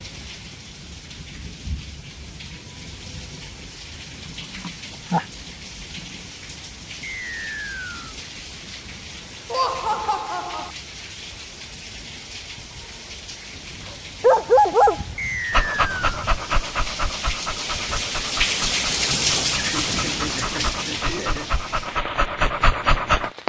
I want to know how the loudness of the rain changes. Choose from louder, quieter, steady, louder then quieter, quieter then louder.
louder.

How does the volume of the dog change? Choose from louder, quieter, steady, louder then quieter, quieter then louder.
quieter then louder.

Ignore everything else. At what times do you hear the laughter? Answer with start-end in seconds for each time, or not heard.
4.5-5.2, 9.5-10.7, 19.1-21.5.